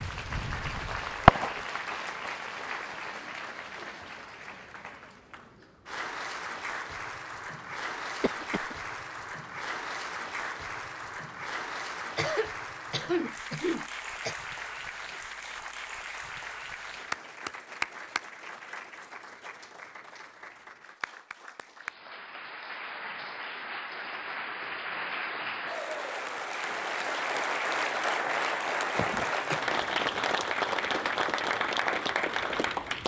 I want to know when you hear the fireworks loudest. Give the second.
1 s.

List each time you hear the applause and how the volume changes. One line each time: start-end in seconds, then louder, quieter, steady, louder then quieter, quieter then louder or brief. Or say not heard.
0.0-33.0 louder.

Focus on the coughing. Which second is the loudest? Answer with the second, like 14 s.
13 s.